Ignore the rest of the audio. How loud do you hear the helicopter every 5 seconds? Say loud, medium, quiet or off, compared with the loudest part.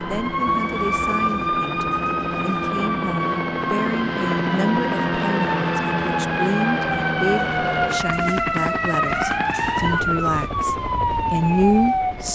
loud, loud, medium.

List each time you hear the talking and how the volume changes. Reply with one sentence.
The talking can be heard from 0.0 to 12.3 s, getting louder.